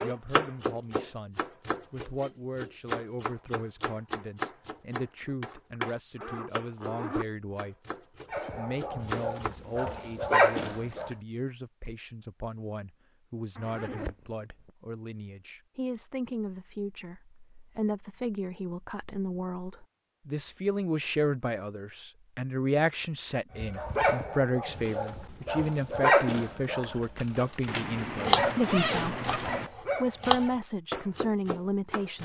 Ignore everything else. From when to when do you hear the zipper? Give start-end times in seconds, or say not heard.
5.2-7.2, 13.6-14.7, 27.6-29.7.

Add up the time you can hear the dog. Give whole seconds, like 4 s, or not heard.
10 s.